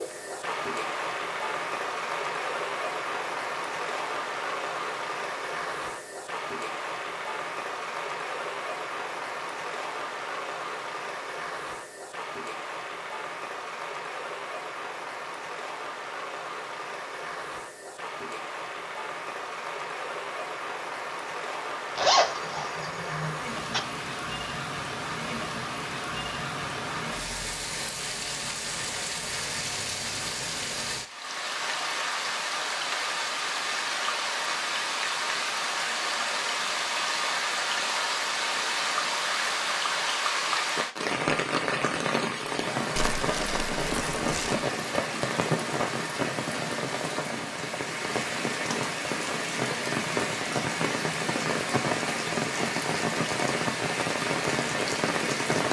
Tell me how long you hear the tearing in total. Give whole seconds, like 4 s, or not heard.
2 s.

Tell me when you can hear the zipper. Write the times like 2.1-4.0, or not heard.
21.9-23.8.